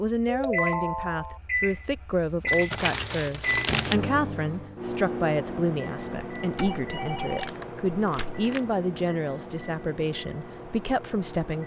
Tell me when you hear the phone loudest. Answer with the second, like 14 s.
1 s.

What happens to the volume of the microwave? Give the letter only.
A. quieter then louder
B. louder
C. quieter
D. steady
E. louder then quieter
C.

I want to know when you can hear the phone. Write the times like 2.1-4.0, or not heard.
0.2-1.4, 6.5-8.4.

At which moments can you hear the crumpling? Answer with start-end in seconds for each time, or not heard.
2.5-4.0, 7.3-8.7.